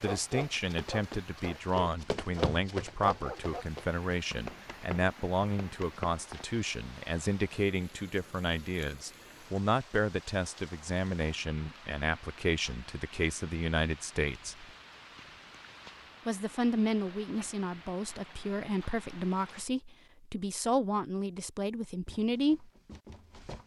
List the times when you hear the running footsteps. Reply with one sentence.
The running footsteps can be heard from 0.0 to 6.5 s and from 22.1 to 23.6 s.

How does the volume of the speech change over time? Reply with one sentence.
The loudness of the speech stays about the same.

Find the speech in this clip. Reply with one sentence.
The speech can be heard from 0.0 to 14.7 s and from 16.2 to 22.7 s.